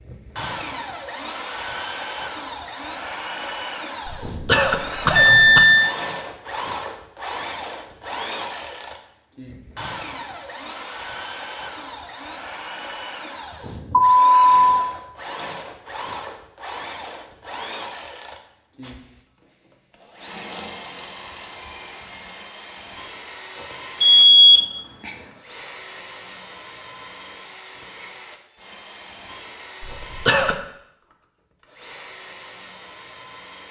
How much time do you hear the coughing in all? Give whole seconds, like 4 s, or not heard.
2 s.